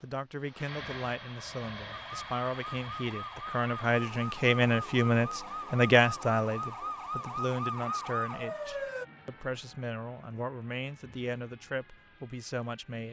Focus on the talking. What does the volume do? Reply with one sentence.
The volume of the talking goes up, then down.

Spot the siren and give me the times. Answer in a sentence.
You can hear the siren from 1.9 to 9.1 s.